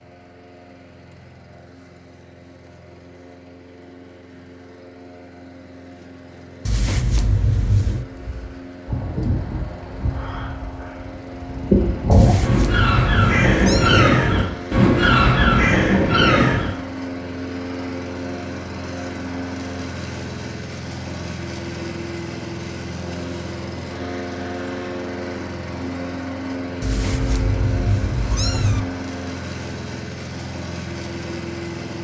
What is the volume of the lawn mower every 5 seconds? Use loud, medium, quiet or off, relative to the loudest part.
quiet, medium, medium, loud, loud, loud, loud.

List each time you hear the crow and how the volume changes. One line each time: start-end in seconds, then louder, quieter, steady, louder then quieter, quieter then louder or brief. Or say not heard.
8.1-16.7 quieter then louder.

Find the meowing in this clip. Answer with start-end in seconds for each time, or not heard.
6.7-8.1, 12.1-14.1, 26.8-28.9.